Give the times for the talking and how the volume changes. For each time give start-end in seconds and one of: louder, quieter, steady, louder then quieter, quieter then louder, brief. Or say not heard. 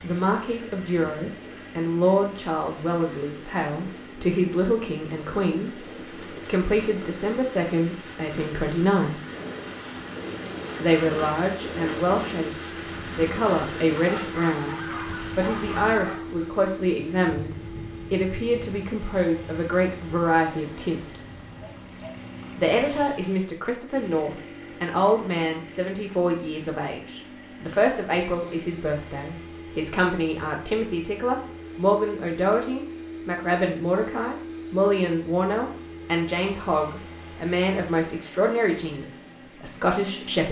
0.0-9.2 steady
10.8-12.5 brief
13.1-21.1 steady
22.6-40.4 steady.